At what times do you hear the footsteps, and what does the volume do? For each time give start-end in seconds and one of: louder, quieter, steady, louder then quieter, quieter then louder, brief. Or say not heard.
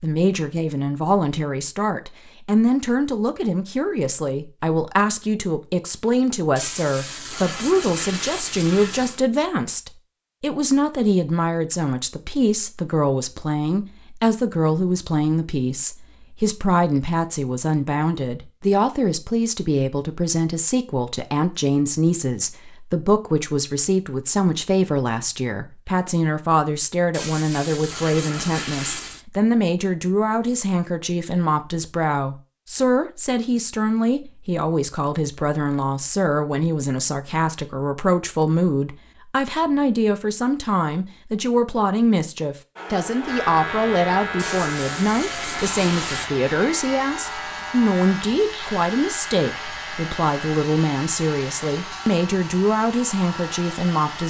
not heard.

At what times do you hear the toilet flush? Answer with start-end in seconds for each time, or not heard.
6.5-9.2, 27.1-29.2, 44.4-46.3.